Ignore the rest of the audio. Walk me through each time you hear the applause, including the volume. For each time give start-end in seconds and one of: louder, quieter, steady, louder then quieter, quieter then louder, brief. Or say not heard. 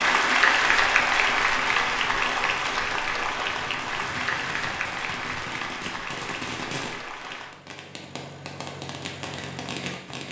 0.0-7.5 quieter.